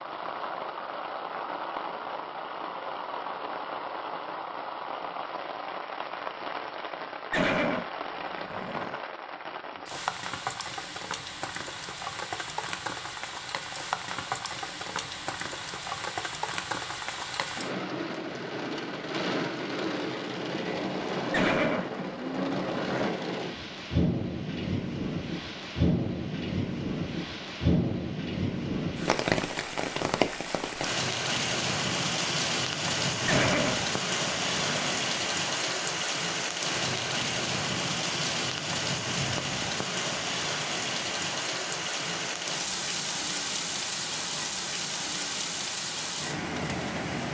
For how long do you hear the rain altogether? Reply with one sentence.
You can hear the rain for 47 seconds altogether.